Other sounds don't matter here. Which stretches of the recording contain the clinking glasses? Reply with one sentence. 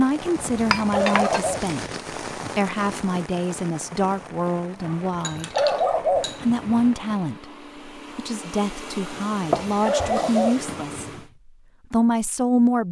You can hear the clinking glasses from 0.3 to 1.9 s, from 5.2 to 6.4 s and from 9.5 to 10.2 s.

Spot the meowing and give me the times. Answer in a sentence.
You can't hear the meowing here.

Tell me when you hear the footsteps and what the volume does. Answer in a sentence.
The footsteps can't be heard in this clip.